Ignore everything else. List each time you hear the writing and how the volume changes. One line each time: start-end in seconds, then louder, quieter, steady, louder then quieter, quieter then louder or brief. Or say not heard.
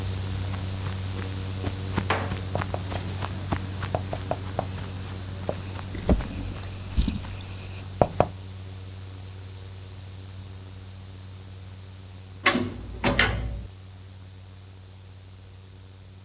1.0-8.3 louder then quieter.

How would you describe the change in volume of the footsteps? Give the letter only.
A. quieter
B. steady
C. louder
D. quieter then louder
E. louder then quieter
A.